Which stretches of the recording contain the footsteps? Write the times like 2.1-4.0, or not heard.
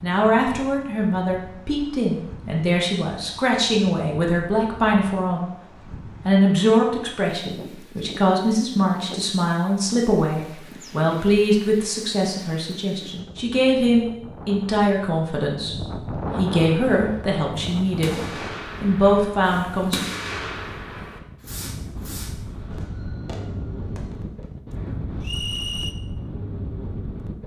not heard.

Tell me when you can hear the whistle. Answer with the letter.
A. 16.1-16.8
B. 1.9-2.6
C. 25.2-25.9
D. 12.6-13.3
C.